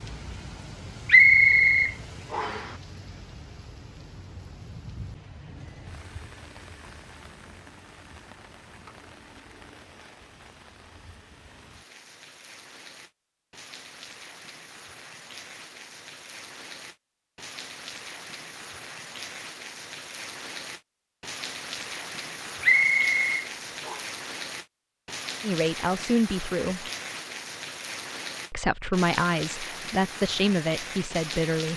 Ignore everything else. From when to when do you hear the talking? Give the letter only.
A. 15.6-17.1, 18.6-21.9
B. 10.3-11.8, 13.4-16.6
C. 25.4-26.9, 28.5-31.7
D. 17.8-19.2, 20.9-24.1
C.